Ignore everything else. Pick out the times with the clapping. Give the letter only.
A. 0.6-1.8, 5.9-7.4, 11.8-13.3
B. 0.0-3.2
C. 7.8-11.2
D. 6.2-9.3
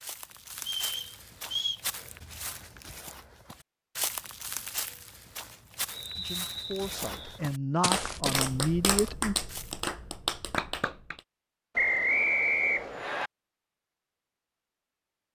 C.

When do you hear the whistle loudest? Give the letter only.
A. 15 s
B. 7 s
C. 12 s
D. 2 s
C.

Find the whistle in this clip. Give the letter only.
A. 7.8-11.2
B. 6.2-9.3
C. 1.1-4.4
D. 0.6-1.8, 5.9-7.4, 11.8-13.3
D.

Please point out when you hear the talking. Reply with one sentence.
You can hear the talking from 6.2 to 9.3 s.